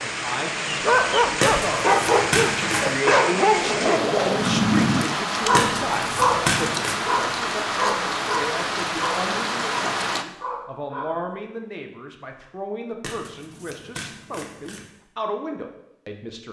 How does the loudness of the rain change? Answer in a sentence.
The volume of the rain stays about the same.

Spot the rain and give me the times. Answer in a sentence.
The rain can be heard from 0.0 to 10.2 s.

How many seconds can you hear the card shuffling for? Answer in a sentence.
You can hear the card shuffling for 5 seconds altogether.